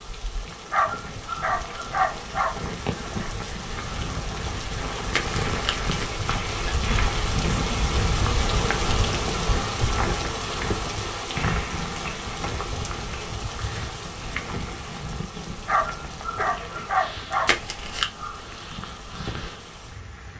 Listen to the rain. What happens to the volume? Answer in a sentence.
The loudness of the rain goes up, then down.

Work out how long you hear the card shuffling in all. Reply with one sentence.
The card shuffling can be heard for 2 seconds in total.